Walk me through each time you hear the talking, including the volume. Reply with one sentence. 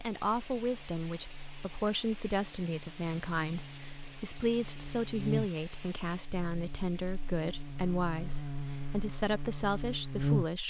You can hear the talking from 0.0 to 10.6 s, at a steady volume.